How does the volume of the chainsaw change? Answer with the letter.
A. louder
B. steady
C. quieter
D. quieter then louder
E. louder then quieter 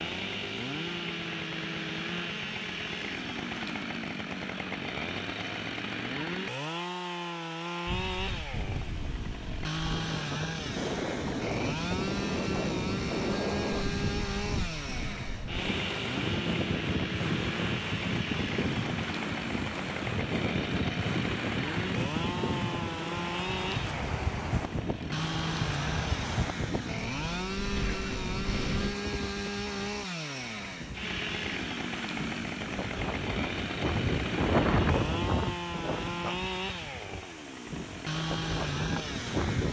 B.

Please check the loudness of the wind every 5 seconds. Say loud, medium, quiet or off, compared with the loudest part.
off, medium, loud, loud, loud, loud, loud, loud.